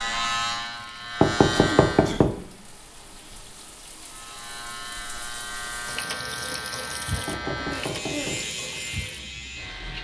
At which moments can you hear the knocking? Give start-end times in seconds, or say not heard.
1.2-2.4, 7.2-8.4.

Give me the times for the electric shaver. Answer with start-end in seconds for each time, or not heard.
0.0-2.1, 4.0-9.9.